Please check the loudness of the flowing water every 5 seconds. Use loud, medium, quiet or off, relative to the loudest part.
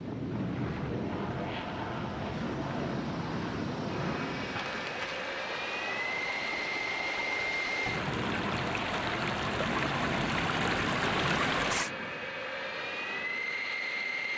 quiet, medium, loud.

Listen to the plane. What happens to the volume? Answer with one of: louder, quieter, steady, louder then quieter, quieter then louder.
steady.